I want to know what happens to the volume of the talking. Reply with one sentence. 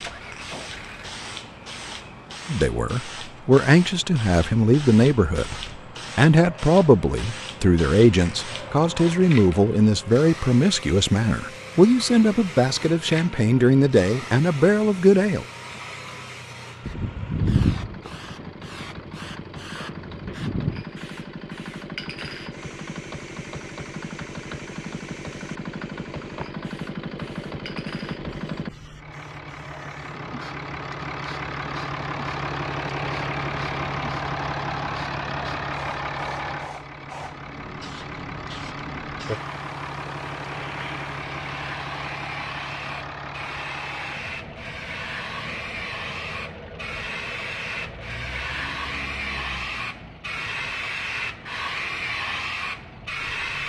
The volume of the talking stays about the same.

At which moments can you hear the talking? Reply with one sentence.
You can hear the talking from 2.5 to 5.5 s and from 6.2 to 15.4 s.